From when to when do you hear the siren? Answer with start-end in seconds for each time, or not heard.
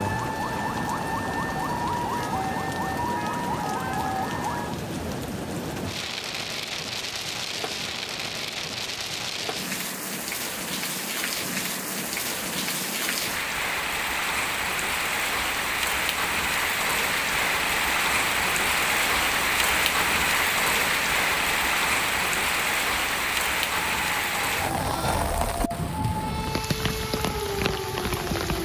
0.0-4.8, 23.5-28.6.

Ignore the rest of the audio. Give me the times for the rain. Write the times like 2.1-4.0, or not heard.
0.0-28.6.